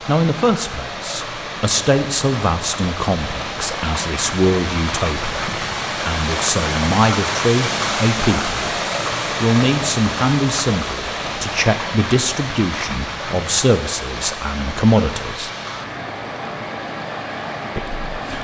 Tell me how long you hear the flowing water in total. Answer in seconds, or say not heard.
18 s.